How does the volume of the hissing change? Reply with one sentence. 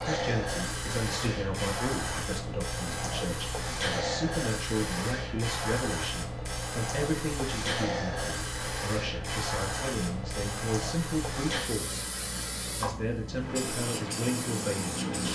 The volume of the hissing stays about the same.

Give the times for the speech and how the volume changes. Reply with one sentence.
You can hear the speech from 0.0 to 12.1 s, at a steady volume; and briefly from 12.8 to 15.3 s.